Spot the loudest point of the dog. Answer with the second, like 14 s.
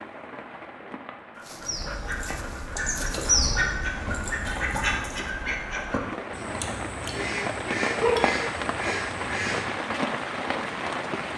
8 s.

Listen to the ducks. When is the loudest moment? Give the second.
3 s.